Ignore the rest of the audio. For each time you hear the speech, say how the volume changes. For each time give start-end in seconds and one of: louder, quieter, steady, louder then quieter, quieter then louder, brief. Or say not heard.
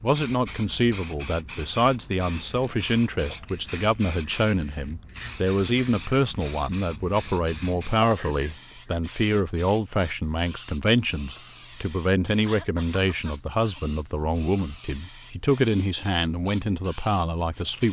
0.0-17.8 steady.